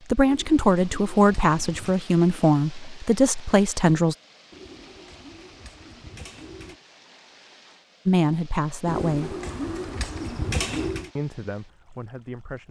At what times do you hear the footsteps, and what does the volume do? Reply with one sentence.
The footsteps can't be heard in this clip.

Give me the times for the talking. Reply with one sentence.
The talking can be heard from 0.1 to 4.2 s, from 8.1 to 9.3 s and from 11.2 to 12.6 s.